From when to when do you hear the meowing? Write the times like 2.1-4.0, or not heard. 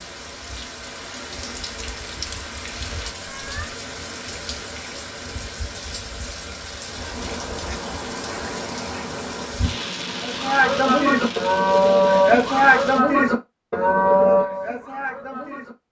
3.2-3.8.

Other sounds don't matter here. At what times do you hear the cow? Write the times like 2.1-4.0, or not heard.
10.2-15.8.